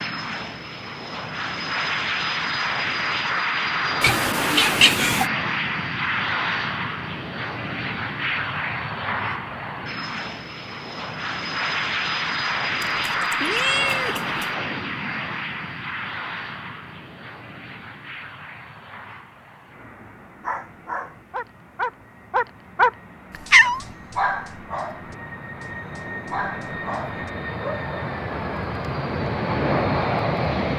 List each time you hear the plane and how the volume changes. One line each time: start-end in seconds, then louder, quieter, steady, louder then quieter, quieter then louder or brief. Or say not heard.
0.0-30.7 quieter then louder.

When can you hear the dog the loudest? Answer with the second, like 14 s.
23 s.